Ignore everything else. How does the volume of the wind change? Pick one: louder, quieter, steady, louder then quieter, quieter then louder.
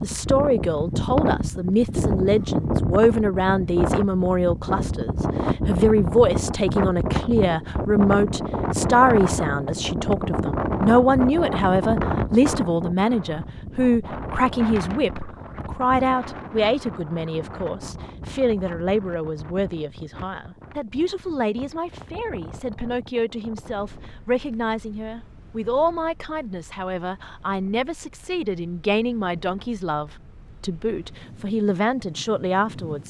quieter.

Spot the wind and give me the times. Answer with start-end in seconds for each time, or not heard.
0.0-33.0.